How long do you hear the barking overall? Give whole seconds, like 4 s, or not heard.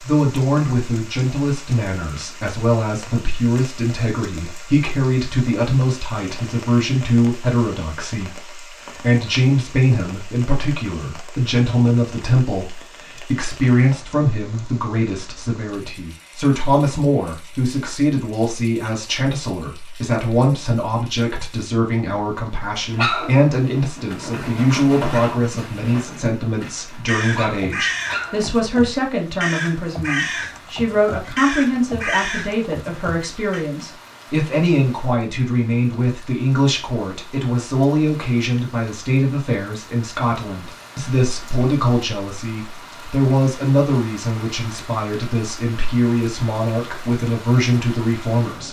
6 s.